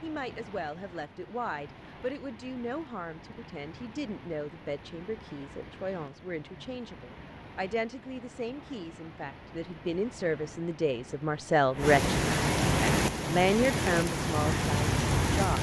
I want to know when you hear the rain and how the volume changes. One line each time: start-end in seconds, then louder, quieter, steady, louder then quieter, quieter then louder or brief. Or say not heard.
0.0-15.5 louder.